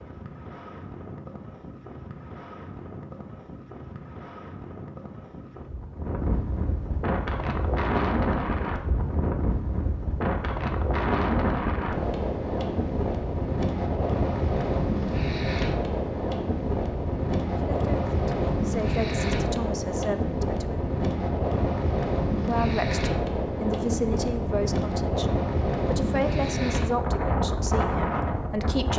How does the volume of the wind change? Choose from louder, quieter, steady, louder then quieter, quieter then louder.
louder.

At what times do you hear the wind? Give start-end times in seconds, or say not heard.
0.0-28.9.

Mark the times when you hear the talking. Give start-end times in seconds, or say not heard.
17.6-20.8, 22.4-28.9.